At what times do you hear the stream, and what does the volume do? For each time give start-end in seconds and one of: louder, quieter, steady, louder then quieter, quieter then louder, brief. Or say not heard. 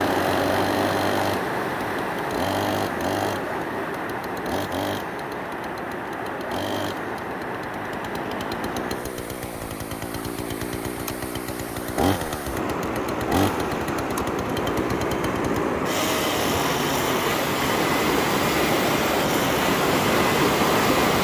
0.0-21.2 quieter then louder.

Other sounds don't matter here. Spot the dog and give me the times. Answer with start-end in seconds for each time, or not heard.
not heard.